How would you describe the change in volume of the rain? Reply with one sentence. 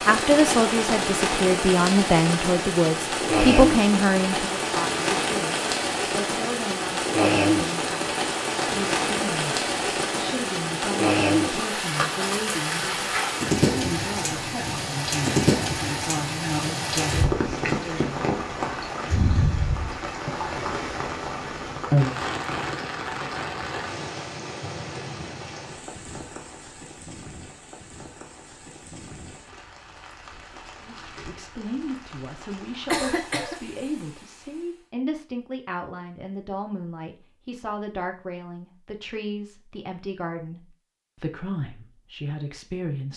The loudness of the rain goes down.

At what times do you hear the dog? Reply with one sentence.
The dog can't be heard in this clip.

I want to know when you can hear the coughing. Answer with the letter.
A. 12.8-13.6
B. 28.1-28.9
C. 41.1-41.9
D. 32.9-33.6
D.